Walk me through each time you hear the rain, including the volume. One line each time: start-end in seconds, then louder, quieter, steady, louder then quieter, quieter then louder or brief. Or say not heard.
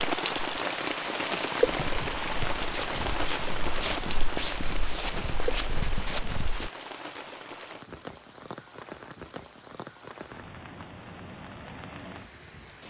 0.0-12.8 quieter.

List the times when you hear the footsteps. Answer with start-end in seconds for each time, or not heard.
1.6-6.7.